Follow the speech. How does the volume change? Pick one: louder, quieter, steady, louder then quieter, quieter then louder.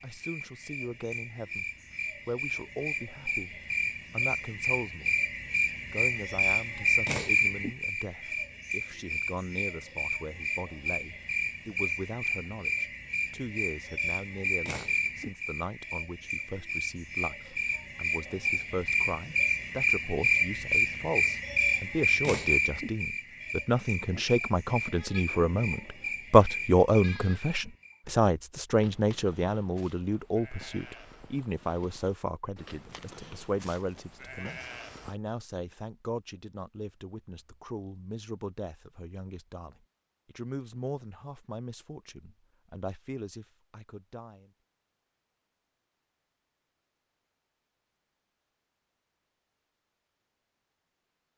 louder then quieter.